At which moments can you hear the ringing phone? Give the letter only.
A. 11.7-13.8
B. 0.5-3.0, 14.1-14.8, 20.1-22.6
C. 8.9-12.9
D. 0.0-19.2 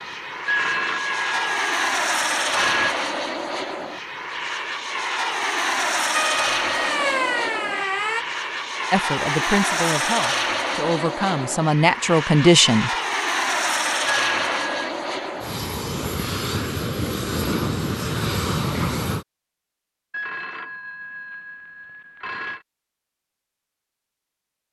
B.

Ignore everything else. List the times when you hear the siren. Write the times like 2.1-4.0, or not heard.
6.1-8.2.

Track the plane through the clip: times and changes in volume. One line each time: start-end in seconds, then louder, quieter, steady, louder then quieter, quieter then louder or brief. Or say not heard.
0.0-19.2 steady.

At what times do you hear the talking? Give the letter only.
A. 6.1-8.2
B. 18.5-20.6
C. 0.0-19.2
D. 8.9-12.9
D.